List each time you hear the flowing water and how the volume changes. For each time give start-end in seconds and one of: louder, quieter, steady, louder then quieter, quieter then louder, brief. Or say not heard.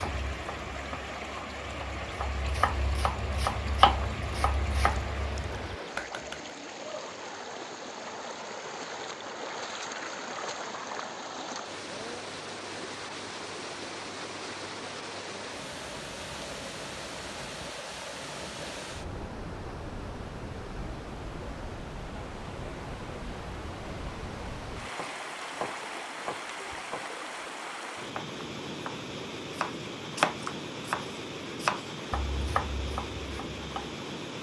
0.0-34.3 steady.